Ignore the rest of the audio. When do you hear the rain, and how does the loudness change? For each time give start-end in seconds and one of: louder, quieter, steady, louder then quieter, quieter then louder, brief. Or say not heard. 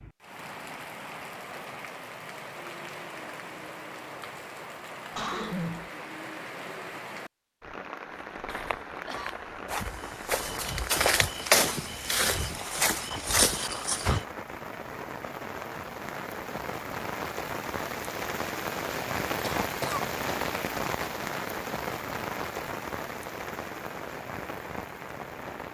0.0-25.6 louder.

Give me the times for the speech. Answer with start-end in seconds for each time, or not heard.
not heard.